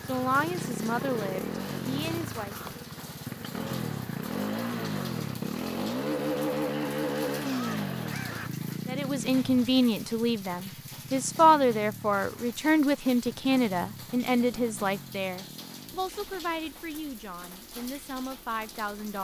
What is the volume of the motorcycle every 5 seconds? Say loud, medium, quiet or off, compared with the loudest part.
loud, loud, quiet, quiet.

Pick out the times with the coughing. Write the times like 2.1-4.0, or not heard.
7.5-8.8.